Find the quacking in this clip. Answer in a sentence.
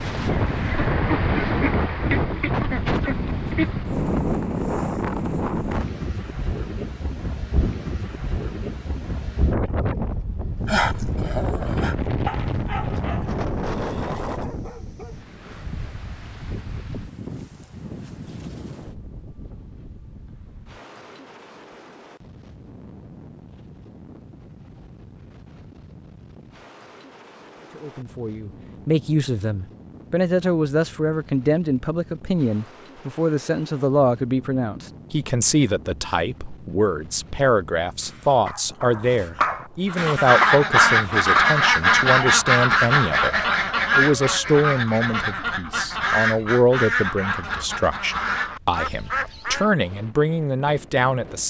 You can hear the quacking from 0.0 to 4.0 s and from 39.9 to 49.7 s.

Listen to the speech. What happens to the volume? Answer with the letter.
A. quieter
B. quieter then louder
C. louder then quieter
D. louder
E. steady
E.